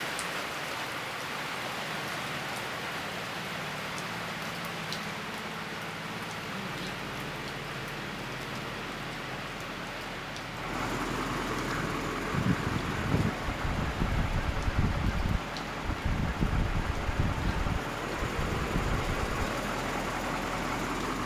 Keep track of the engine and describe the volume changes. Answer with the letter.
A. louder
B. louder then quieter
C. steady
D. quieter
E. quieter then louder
A.